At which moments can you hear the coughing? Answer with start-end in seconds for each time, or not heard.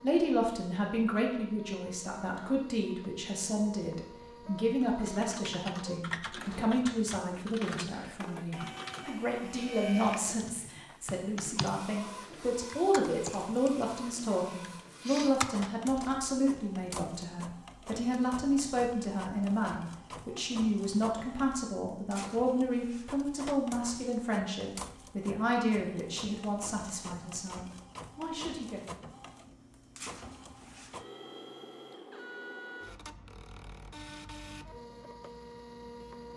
not heard.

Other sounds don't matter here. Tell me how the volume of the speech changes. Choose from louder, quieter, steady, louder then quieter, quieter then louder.
steady.